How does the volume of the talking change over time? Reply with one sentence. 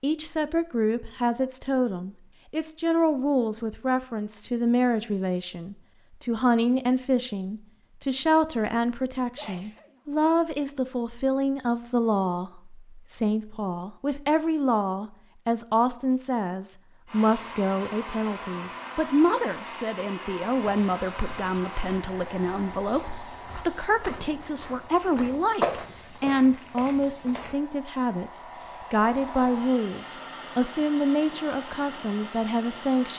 The loudness of the talking stays about the same.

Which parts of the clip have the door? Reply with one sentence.
The door can't be heard in this clip.